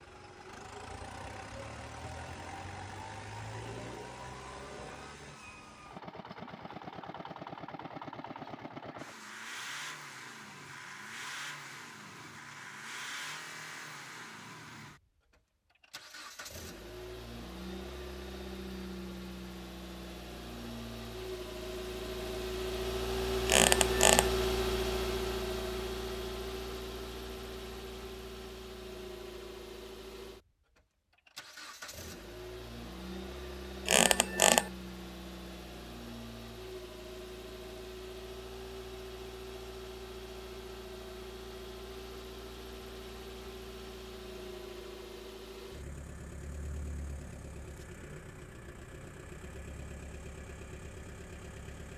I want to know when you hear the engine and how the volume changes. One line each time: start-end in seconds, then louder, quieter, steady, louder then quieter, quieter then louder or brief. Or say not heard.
0.0-51.9 louder then quieter.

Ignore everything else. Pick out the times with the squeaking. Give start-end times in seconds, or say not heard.
23.4-24.3, 33.9-34.7.